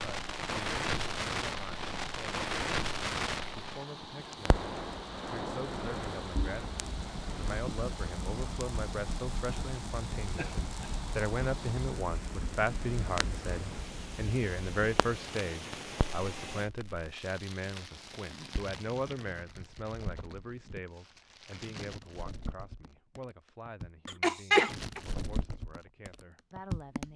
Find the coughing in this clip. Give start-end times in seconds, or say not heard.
10.3-11.0, 24.1-25.0.